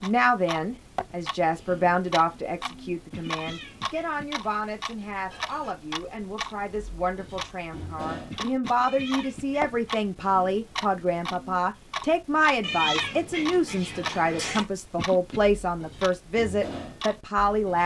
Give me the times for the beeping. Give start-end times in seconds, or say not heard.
not heard.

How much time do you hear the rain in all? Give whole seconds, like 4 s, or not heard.
not heard.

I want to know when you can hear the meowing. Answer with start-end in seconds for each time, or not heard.
3.2-4.2, 8.8-10.0, 12.6-14.7.